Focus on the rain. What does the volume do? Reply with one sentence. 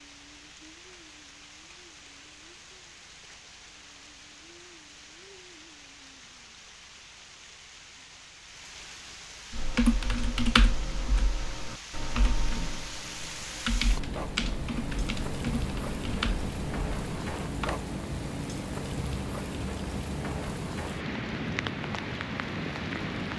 The volume of the rain goes up.